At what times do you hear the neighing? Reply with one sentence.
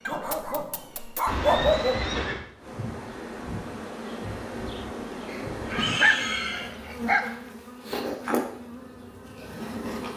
The neighing can be heard from 1.2 to 2.4 s and from 5.7 to 6.7 s.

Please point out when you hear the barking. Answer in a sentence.
The barking can be heard from 0.1 to 2.0 s and from 5.3 to 7.2 s.